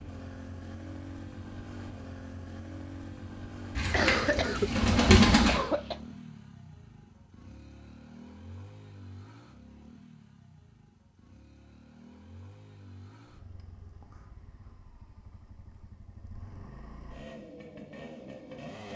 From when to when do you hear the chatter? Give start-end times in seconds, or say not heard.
not heard.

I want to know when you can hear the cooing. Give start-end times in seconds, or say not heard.
3.8-5.6.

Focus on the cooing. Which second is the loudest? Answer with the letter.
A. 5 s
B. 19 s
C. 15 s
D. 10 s
A.